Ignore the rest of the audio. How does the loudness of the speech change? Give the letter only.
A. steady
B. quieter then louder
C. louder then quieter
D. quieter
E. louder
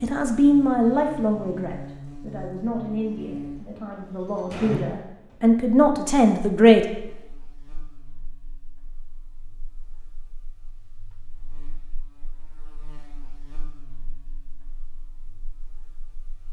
B.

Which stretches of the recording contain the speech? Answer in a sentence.
You can hear the speech from 0.0 to 6.8 s.